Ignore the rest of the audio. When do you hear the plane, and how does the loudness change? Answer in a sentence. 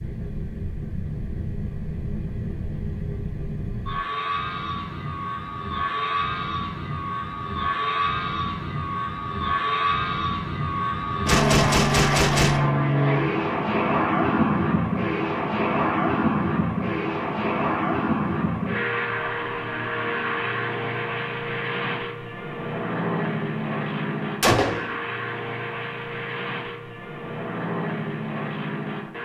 You can hear the plane from 0.0 to 29.1 s, getting louder then quieter.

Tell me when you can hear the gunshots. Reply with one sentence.
The gunshots can be heard from 11.2 to 12.7 s and from 24.4 to 24.9 s.